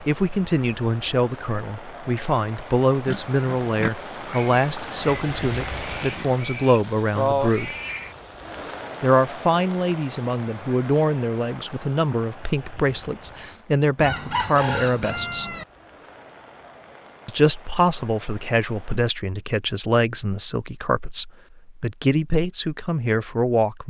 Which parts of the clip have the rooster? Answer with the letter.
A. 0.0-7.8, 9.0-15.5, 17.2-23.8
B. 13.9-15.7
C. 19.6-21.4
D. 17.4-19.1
B.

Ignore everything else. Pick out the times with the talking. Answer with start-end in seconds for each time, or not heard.
0.0-7.8, 9.0-15.5, 17.2-23.8.